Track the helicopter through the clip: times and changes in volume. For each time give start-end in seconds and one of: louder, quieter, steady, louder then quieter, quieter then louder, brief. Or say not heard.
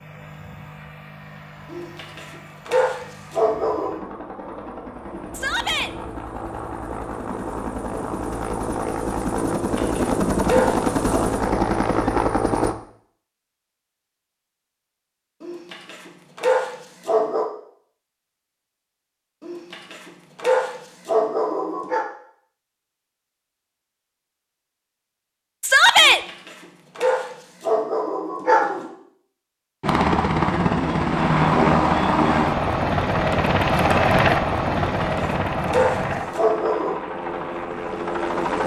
0.0-12.8 louder
29.8-38.6 quieter.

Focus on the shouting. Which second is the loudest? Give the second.
26 s.